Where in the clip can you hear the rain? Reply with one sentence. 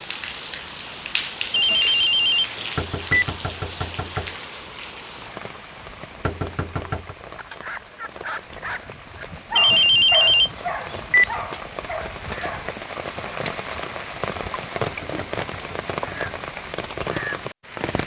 You can hear the rain from 0.0 to 18.0 s.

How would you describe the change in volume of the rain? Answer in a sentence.
The loudness of the rain goes down, then up.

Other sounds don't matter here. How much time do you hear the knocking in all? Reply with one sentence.
You can hear the knocking for 4 seconds altogether.